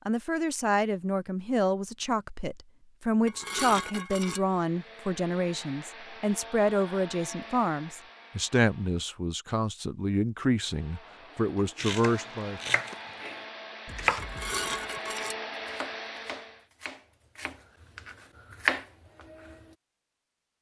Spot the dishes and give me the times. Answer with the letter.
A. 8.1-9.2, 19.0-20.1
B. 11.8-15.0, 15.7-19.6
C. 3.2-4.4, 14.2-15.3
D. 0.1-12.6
C.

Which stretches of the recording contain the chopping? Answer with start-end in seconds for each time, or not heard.
11.8-15.0, 15.7-19.6.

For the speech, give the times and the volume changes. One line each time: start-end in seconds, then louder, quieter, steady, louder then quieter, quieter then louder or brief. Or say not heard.
0.1-12.6 steady.